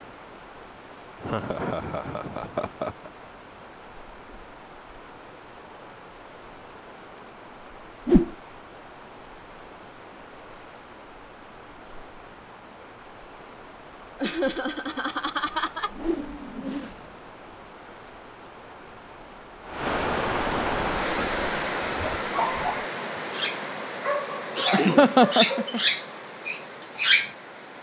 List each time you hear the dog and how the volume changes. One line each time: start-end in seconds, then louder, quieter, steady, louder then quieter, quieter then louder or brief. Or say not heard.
21.0-27.3 louder.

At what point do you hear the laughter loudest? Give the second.
25 s.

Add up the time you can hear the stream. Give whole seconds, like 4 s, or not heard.
28 s.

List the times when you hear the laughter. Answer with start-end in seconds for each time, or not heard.
1.2-3.1, 14.2-15.9, 24.7-25.8.